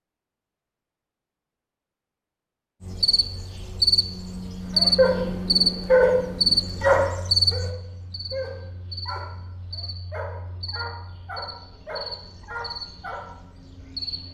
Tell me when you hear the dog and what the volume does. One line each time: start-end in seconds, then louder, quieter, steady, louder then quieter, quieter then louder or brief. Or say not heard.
4.8-13.2 quieter.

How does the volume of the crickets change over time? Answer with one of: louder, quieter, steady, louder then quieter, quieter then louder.
quieter.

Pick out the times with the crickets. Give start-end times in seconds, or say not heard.
2.8-14.3.